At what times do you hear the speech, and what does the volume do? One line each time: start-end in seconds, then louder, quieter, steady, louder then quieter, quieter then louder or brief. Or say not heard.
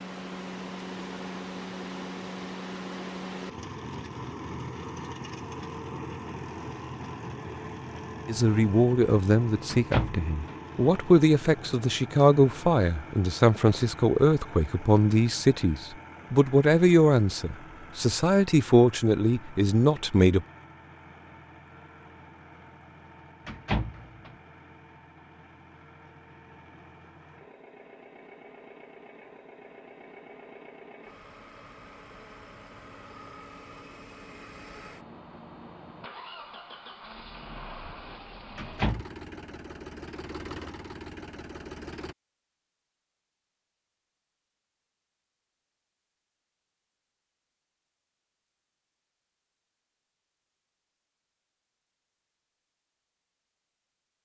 8.2-20.4 steady.